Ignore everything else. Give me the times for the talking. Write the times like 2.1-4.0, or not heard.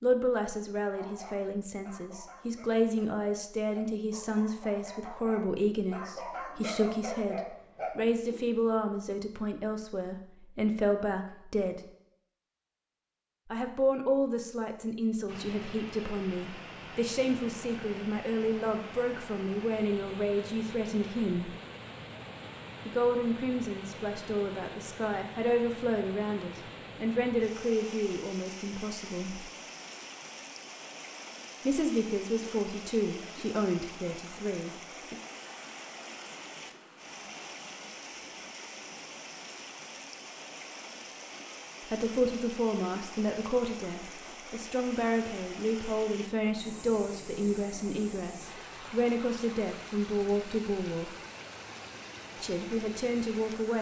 0.0-11.8, 13.5-21.6, 22.9-29.4, 31.6-35.1, 41.9-51.1, 52.4-53.7.